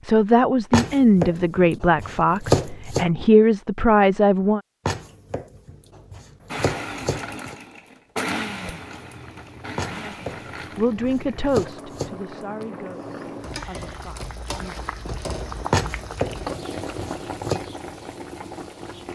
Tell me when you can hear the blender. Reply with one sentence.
You can hear the blender from 6.5 to 10.8 s.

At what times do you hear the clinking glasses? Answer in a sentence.
You can't hear the clinking glasses here.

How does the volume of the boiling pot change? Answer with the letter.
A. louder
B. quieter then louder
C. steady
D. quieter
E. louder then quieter
A.